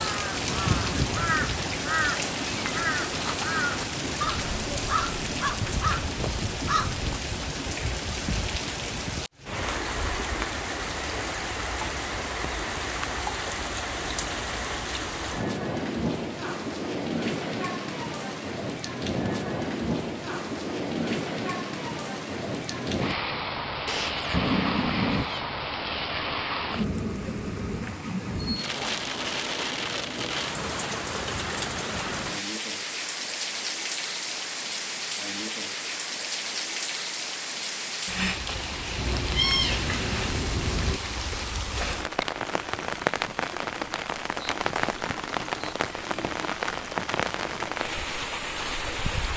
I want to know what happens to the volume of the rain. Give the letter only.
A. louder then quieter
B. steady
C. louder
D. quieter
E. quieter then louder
B.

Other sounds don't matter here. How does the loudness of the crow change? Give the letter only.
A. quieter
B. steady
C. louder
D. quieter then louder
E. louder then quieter
B.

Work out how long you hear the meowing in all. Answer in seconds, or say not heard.
5 s.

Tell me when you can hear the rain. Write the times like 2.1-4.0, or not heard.
0.0-49.3.